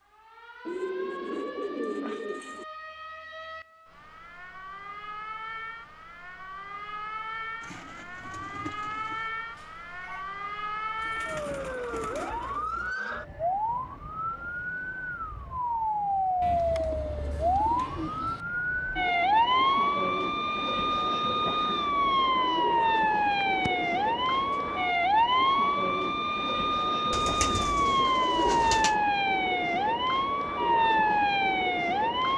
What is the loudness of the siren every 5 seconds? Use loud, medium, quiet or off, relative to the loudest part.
quiet, quiet, medium, loud, loud, loud, loud.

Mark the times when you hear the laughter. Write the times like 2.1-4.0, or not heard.
not heard.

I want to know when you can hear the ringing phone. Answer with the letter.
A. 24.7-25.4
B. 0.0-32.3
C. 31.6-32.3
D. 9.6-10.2
D.